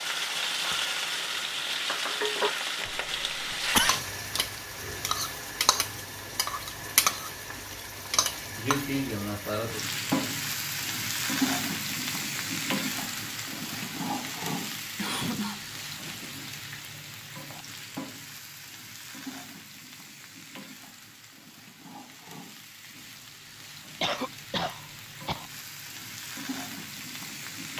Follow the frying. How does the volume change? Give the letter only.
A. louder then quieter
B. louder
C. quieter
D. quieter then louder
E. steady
C.